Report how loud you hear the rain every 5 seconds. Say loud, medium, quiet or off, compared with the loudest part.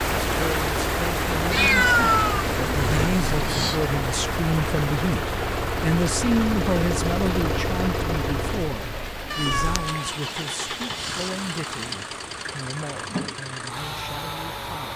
loud, medium, medium.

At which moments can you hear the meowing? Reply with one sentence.
The meowing can be heard from 1.5 to 3.8 s and from 9.3 to 10.1 s.